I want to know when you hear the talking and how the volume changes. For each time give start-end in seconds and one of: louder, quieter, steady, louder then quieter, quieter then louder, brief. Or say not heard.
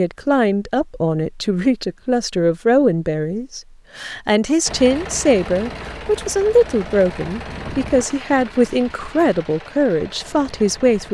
0.0-11.0 steady.